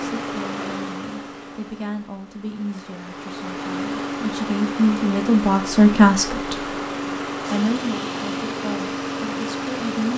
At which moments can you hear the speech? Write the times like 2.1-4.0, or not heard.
0.0-6.5, 7.5-10.1.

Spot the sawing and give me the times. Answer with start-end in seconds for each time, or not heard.
not heard.